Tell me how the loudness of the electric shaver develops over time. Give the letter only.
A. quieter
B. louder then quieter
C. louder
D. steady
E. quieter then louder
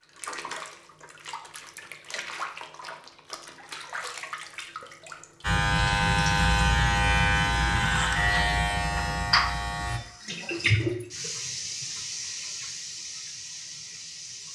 A.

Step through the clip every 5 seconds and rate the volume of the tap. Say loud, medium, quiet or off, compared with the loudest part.
medium, loud, loud.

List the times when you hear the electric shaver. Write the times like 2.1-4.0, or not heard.
5.4-10.0.